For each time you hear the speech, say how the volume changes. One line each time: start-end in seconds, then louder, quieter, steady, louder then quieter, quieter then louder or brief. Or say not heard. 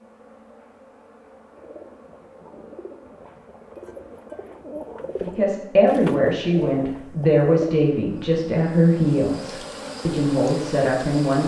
5.2-11.4 steady.